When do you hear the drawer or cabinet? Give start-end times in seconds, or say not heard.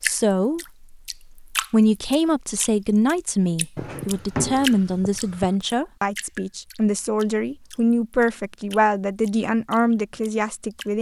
3.8-5.5.